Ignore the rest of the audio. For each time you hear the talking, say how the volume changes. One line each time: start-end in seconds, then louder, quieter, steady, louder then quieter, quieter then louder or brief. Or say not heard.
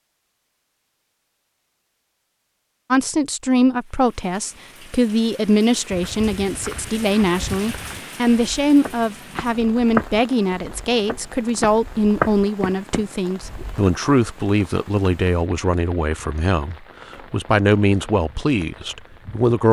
2.9-19.6 steady.